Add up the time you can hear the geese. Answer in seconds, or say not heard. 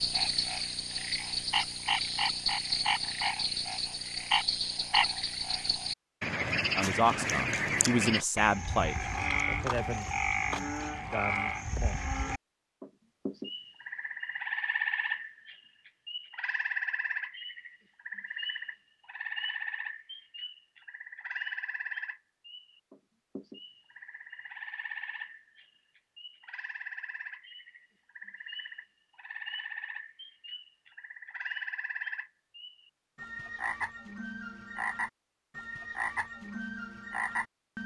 not heard.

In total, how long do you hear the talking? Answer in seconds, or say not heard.
2 s.